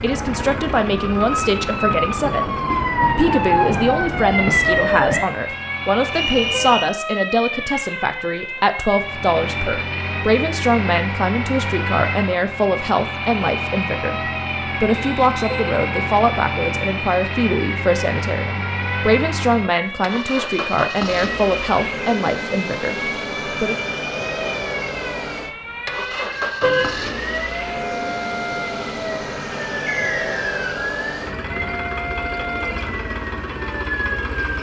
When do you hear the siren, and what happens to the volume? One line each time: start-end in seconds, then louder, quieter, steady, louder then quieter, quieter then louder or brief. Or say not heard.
0.0-34.5 quieter.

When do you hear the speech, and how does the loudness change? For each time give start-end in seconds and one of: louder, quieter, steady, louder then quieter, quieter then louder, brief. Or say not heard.
0.0-23.8 steady.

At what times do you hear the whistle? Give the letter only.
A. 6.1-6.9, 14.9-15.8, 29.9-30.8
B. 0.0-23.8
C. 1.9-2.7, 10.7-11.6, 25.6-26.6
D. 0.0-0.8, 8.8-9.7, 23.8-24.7
A.